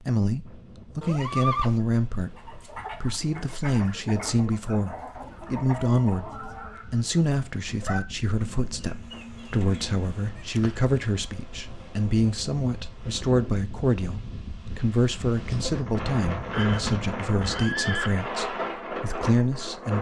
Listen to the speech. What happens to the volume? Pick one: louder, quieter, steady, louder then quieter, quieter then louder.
steady.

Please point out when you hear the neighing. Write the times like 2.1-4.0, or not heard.
1.0-1.8, 10.3-10.8, 16.5-18.1.